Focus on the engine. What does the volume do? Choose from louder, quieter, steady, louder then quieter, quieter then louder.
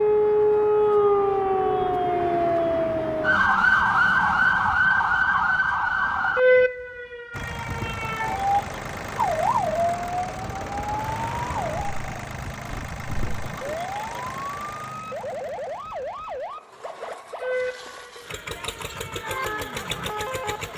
quieter then louder.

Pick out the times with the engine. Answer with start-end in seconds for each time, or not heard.
7.3-20.7.